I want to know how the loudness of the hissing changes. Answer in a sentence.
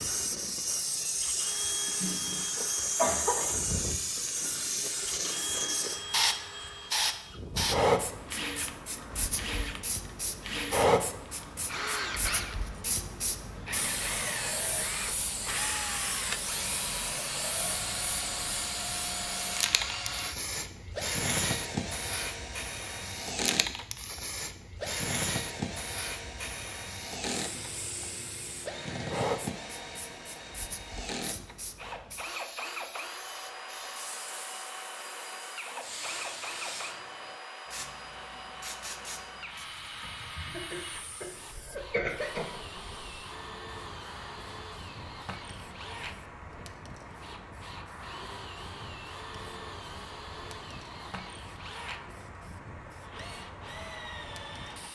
The volume of the hissing goes down.